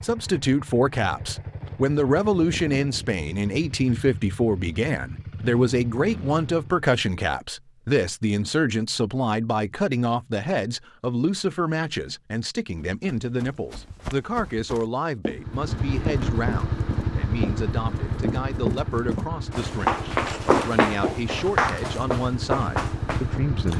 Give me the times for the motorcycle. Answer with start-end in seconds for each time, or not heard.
0.0-6.9, 15.3-23.7.